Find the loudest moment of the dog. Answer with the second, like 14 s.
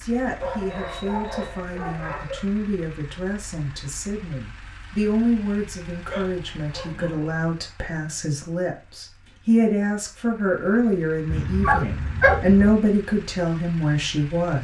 12 s.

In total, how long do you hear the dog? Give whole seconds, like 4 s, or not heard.
5 s.